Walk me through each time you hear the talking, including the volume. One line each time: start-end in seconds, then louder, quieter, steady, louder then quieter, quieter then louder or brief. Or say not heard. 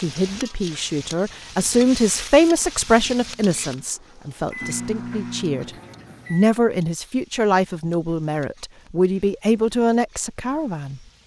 0.0-5.7 louder then quieter
6.3-11.0 steady.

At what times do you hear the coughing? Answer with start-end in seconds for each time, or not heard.
not heard.